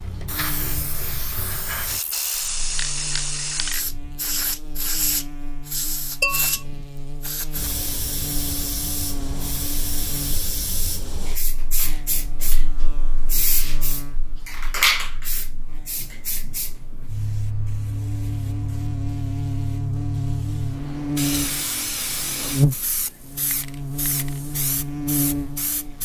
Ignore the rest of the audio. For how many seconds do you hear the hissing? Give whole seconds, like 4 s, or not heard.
26 s.